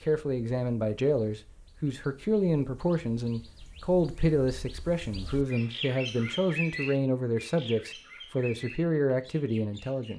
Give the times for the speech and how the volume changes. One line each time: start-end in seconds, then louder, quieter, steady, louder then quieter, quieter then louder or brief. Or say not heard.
0.0-10.1 steady.